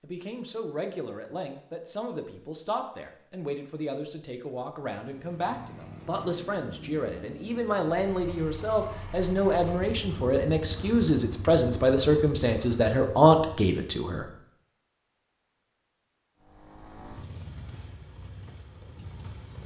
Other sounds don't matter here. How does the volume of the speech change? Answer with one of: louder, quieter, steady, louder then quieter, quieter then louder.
louder.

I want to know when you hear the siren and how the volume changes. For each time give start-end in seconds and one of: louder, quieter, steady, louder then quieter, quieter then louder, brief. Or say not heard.
not heard.